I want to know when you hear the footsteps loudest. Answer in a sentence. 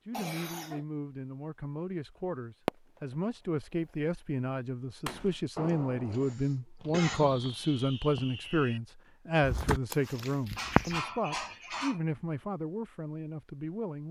The volume of the footsteps peaks at 11 seconds.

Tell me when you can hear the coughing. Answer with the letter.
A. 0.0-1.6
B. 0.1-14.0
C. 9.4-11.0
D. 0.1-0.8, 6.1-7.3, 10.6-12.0
D.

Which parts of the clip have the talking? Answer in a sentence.
The talking can be heard from 0.1 to 14.0 s.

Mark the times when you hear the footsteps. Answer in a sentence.
The footsteps can be heard from 9.4 to 11.0 s.